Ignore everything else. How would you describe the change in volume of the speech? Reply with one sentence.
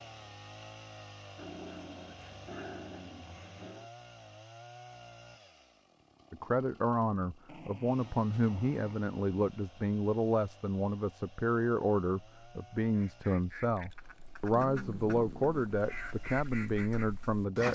The volume of the speech stays about the same.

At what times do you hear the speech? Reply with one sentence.
The speech can be heard from 6.3 to 17.7 s.